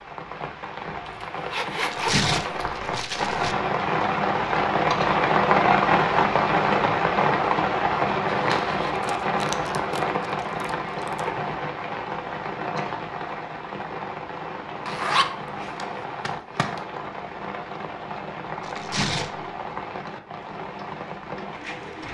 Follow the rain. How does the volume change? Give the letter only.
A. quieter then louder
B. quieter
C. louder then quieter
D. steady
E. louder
C.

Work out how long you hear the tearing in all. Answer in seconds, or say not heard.
4 s.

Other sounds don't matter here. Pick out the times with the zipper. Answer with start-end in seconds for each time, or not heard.
1.1-2.8, 8.2-9.0, 14.8-16.9.